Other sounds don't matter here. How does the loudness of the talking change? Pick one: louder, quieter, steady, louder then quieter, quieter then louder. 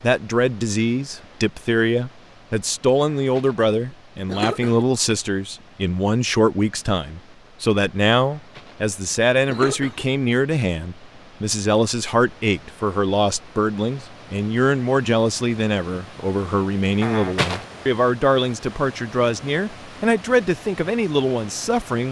steady.